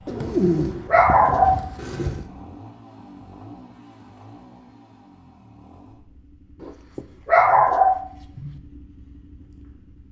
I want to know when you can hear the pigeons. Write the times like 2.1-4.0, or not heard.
0.1-2.2.